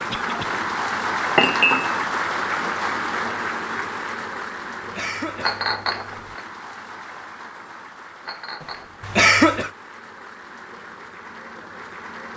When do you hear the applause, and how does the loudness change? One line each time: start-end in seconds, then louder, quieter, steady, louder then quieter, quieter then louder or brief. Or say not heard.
0.0-12.3 quieter.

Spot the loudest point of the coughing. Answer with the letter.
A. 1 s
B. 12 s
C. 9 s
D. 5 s
C.